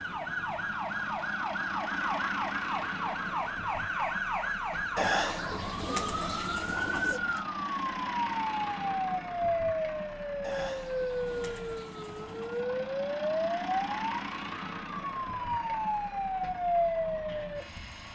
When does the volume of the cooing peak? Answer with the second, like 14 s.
5 s.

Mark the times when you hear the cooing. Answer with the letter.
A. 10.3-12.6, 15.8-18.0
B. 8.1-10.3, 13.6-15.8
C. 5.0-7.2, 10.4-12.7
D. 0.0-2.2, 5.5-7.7
C.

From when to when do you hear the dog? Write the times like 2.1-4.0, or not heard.
not heard.